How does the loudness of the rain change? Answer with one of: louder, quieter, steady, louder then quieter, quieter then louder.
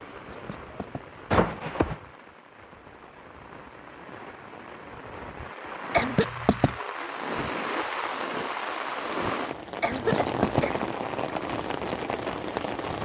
louder.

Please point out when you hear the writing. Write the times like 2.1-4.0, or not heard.
0.3-1.1, 6.0-6.8, 9.9-10.7.